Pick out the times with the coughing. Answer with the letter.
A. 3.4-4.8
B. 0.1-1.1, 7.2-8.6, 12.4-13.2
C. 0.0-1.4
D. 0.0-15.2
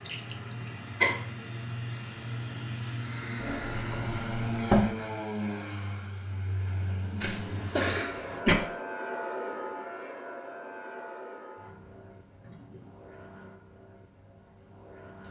B.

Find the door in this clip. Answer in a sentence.
The door can be heard from 3.4 to 4.8 s.